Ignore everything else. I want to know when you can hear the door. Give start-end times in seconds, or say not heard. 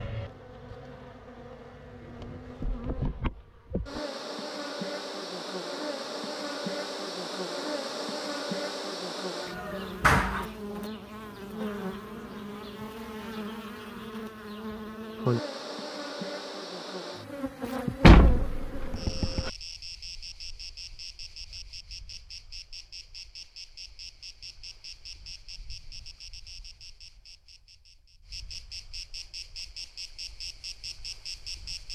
10.0-10.4, 18.0-19.5.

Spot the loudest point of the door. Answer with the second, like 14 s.
18 s.